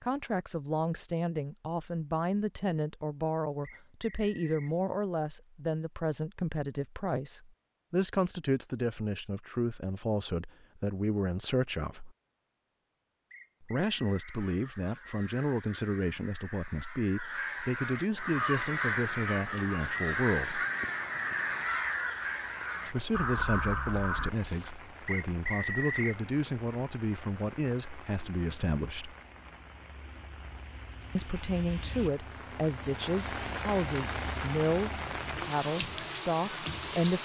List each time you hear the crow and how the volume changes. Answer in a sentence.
The crow can be heard from 14.0 to 24.8 s, getting louder.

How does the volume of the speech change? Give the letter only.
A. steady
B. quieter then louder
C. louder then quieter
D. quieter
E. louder
A.